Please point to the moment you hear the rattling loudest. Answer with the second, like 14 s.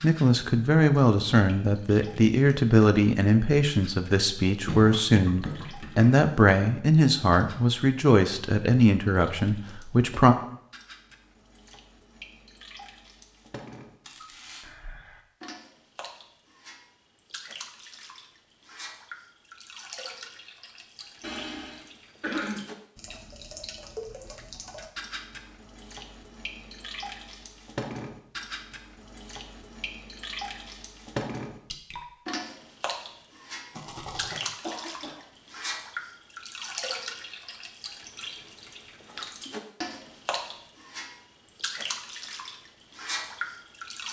34 s.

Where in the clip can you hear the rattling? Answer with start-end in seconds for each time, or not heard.
14.1-14.7, 33.7-34.5.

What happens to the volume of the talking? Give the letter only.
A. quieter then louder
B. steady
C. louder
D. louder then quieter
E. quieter
B.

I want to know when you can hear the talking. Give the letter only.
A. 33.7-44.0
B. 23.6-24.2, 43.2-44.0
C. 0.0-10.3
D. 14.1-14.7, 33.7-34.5
C.